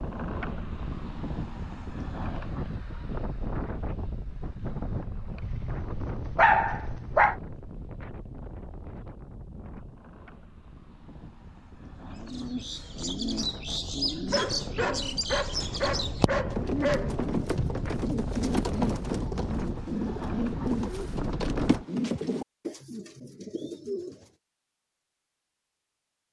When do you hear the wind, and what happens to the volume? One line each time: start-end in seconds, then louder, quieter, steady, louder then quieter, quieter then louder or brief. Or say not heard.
0.0-21.9 quieter then louder.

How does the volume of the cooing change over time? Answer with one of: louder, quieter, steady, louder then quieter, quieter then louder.
steady.